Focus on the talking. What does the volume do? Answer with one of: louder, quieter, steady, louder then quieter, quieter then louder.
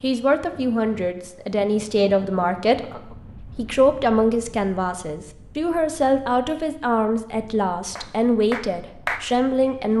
steady.